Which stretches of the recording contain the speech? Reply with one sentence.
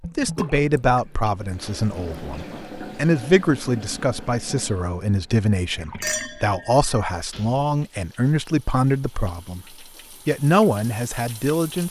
You can hear the speech from 0.1 to 9.7 s and from 10.2 to 11.8 s.